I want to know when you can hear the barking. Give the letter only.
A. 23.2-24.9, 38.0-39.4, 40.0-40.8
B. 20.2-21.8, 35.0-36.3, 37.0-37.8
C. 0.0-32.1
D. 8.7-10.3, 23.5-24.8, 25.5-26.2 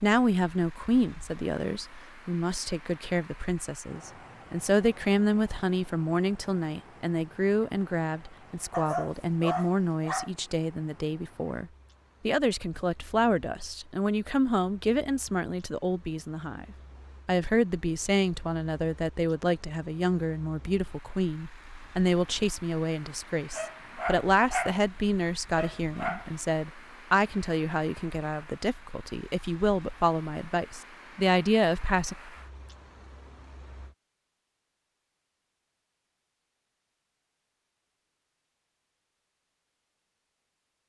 D.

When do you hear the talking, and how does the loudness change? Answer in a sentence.
You can hear the talking from 0.0 to 32.1 s, at a steady volume.